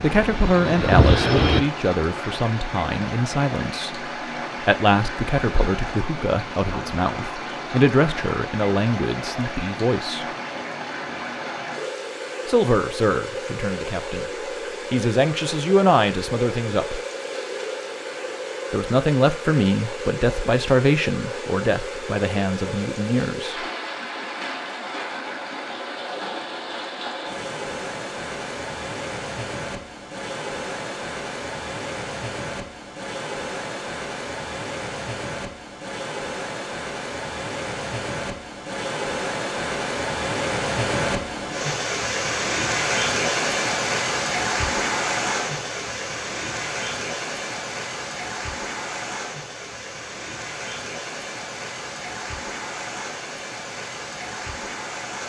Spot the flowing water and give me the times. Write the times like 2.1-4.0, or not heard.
0.0-55.2.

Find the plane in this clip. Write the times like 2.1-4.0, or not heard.
0.1-1.6.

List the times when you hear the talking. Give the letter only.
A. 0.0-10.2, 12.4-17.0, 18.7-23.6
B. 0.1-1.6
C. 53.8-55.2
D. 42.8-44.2
A.